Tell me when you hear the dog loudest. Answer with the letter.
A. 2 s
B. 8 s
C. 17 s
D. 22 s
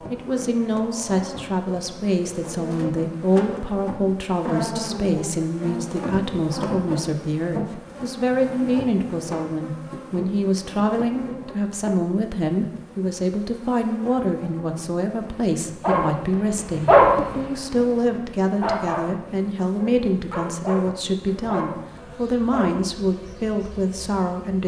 C.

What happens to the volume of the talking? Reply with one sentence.
The volume of the talking stays about the same.